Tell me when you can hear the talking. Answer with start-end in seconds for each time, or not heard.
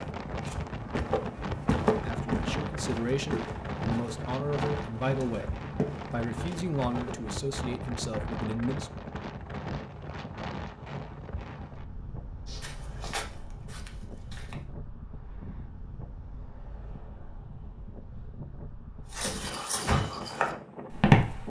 2.0-5.5, 6.1-8.9.